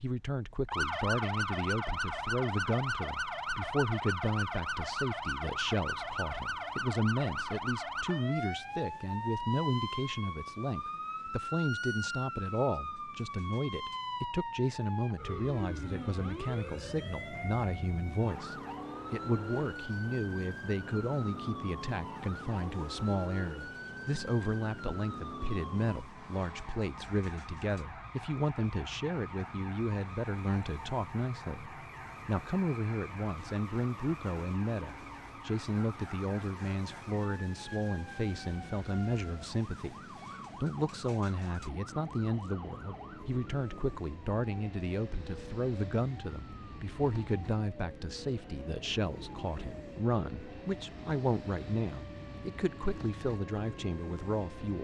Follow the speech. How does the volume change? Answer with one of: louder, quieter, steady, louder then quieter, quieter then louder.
steady.